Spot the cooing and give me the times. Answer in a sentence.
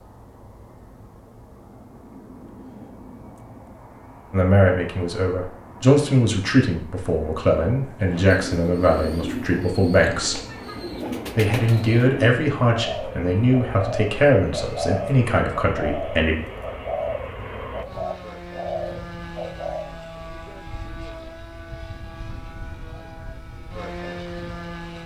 The cooing can be heard from 8.1 to 19.9 s.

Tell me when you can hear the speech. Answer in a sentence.
You can hear the speech from 4.3 to 10.4 s and from 11.3 to 16.4 s.